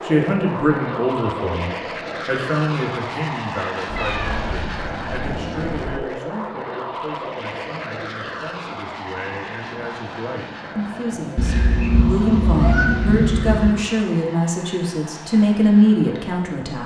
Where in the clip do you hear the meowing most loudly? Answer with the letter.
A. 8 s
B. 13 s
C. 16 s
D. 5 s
B.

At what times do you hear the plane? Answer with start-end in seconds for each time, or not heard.
0.0-16.8.